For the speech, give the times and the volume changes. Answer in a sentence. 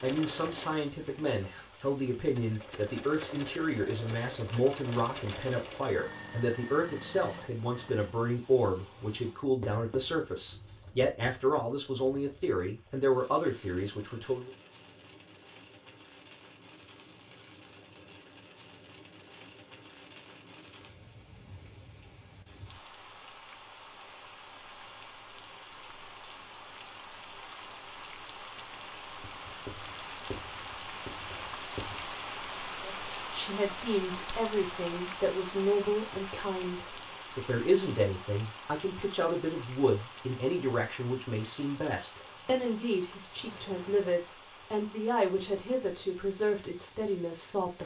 You can hear the speech from 0.0 to 14.5 s, at a steady volume; and from 32.9 to 47.8 s, at a steady volume.